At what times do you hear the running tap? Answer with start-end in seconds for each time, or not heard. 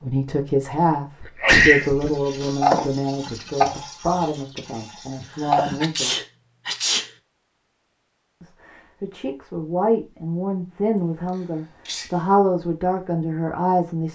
1.8-5.8.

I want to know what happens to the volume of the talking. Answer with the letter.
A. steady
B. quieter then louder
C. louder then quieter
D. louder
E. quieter
B.